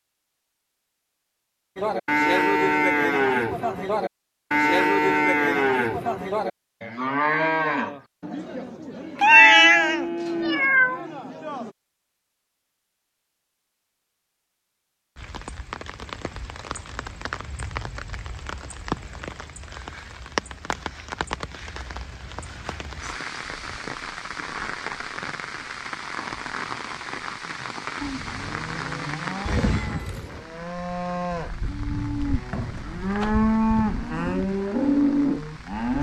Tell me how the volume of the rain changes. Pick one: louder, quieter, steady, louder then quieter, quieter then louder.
quieter.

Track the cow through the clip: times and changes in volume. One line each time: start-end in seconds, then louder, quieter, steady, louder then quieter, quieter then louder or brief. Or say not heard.
1.8-11.7 quieter
28.0-35.9 louder.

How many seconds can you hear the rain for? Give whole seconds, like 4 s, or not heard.
21 s.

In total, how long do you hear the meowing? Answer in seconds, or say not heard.
3 s.